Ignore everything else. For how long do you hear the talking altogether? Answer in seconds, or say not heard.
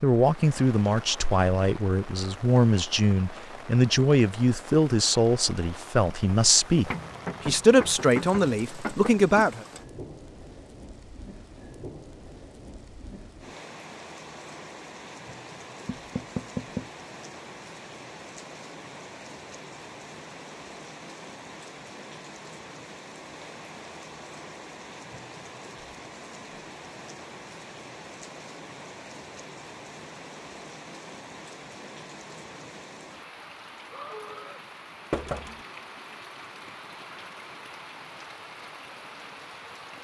10 s.